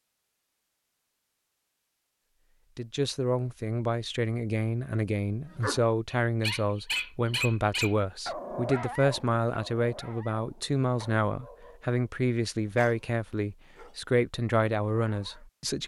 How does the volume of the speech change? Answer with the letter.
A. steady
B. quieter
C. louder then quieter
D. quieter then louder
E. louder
A.